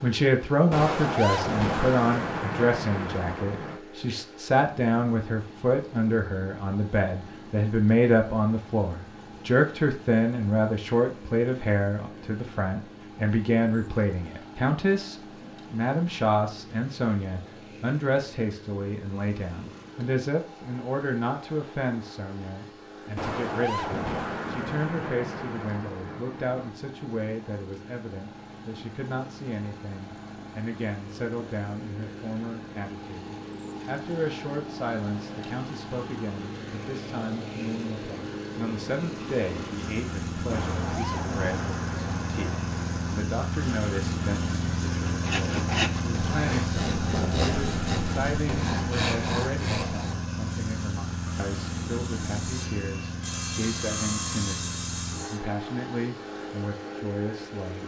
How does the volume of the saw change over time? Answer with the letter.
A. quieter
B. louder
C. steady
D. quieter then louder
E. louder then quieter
D.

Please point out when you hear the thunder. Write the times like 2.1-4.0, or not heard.
0.7-3.8, 23.1-26.7, 40.5-43.2.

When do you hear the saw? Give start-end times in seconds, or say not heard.
45.0-55.4.